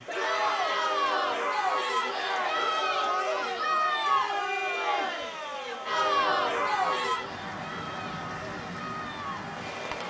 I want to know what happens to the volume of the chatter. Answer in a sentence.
The volume of the chatter goes down.